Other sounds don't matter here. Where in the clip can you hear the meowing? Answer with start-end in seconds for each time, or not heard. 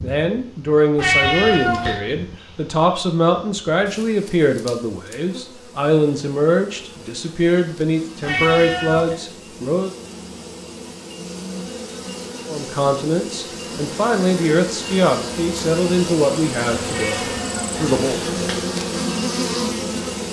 0.9-2.0, 8.2-9.2, 16.9-18.6.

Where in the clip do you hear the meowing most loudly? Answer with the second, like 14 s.
1 s.